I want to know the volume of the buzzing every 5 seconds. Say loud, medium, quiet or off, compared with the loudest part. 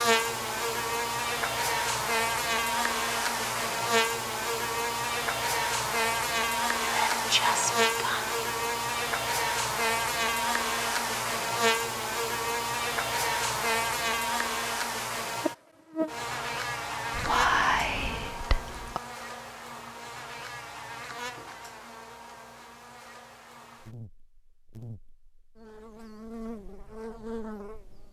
loud, loud, loud, medium, quiet, quiet.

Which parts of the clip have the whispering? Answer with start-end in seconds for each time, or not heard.
6.8-8.4, 17.1-19.0.